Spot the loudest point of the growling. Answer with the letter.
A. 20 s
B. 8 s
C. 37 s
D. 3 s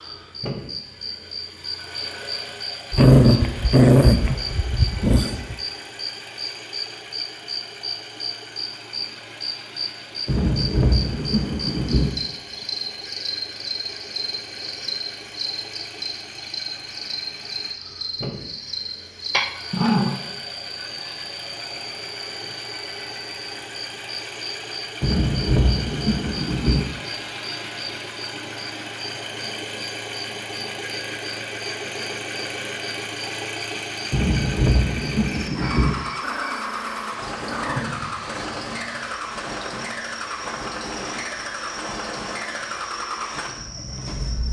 D.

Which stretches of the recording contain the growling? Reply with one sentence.
You can hear the growling from 2.9 to 5.5 s, from 19.3 to 20.2 s and from 36.2 to 38.0 s.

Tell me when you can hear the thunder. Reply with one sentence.
The thunder can be heard from 10.2 to 12.1 s, from 25.0 to 26.9 s and from 34.1 to 36.0 s.